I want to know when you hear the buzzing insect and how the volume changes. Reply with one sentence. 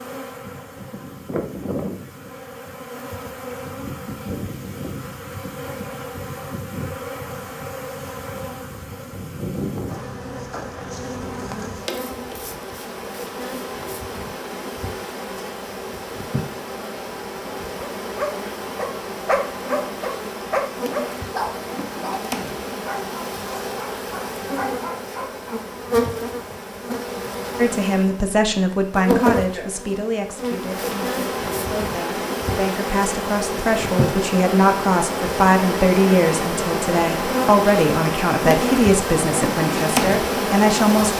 The buzzing insect can be heard from 0.0 to 41.1 s, getting louder.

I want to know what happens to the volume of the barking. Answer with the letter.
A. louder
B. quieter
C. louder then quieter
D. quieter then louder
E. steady
B.